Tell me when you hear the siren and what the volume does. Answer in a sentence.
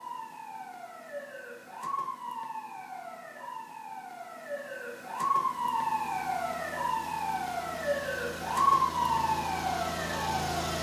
The siren can be heard from 0.0 to 10.7 s, getting louder.